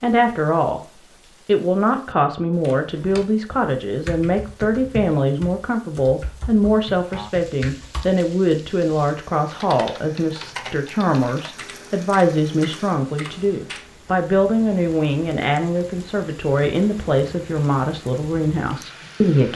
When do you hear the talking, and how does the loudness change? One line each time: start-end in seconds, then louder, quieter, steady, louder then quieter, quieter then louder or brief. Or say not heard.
0.0-0.8 brief
1.4-19.5 steady.